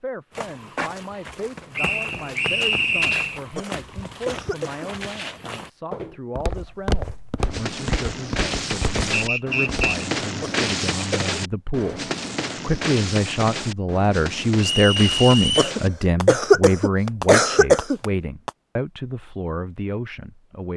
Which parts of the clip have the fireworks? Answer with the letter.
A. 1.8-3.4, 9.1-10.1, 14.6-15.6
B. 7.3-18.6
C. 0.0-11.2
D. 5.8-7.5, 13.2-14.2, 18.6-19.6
B.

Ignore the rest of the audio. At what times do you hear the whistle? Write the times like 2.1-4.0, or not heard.
1.8-3.4, 9.1-10.1, 14.6-15.6.